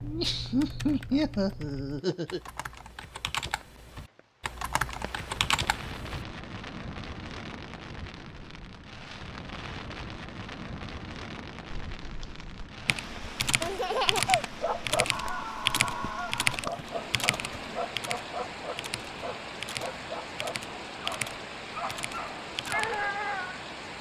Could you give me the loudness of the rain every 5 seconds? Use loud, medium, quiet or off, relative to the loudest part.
quiet, loud, loud, loud, loud.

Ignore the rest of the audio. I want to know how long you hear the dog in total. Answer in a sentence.
You can hear the dog for 9 seconds altogether.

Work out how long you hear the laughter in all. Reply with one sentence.
You can hear the laughter for 3 seconds altogether.